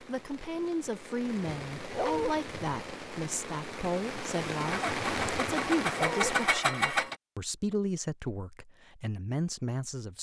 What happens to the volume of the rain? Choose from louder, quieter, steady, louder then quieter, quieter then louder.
louder.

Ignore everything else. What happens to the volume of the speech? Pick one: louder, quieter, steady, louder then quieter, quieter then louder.
steady.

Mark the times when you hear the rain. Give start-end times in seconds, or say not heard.
0.0-6.5.